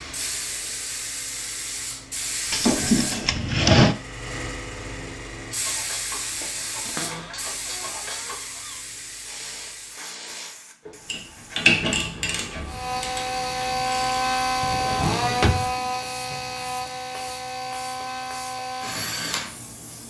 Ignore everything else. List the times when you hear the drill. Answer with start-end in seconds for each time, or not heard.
12.7-20.0.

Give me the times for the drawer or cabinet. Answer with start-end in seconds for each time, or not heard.
2.5-4.0, 6.8-8.8, 14.6-15.8.